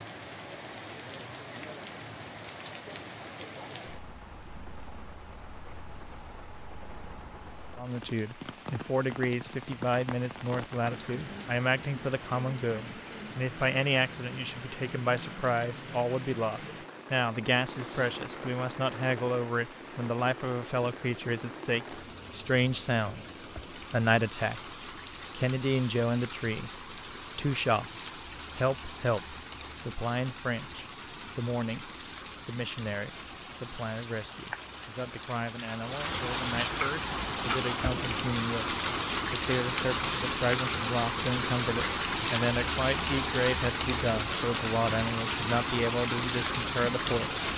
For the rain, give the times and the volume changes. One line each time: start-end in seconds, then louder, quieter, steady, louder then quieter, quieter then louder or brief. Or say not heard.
0.0-47.5 louder.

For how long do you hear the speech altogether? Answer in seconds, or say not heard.
40 s.